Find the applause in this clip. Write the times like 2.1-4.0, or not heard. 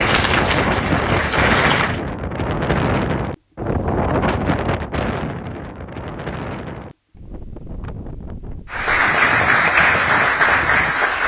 0.0-2.0, 8.7-11.2.